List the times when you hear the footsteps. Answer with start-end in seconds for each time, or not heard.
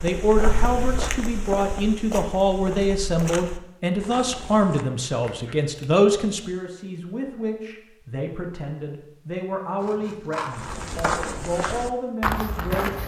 0.0-4.8, 10.5-13.0.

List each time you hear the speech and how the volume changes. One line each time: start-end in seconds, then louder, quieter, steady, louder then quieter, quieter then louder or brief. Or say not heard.
0.0-13.0 quieter.